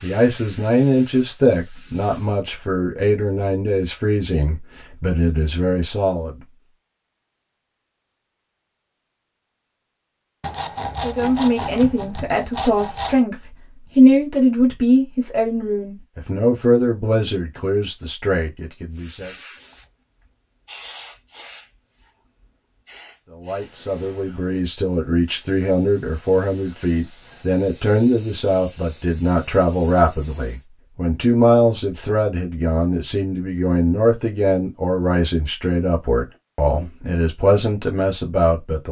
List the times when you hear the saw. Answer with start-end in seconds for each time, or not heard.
10.4-13.2.